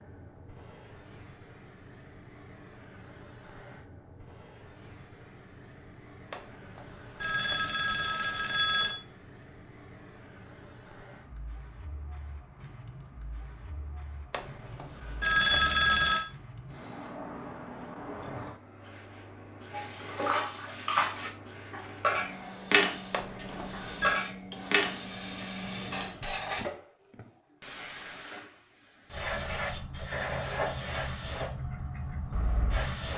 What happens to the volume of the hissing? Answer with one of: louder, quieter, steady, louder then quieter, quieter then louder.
louder.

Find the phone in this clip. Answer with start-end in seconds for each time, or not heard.
6.3-8.9, 14.3-16.2, 23.1-24.2.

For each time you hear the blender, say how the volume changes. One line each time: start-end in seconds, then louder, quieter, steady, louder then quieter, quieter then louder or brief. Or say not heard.
not heard.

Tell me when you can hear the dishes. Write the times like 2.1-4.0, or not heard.
19.7-26.6.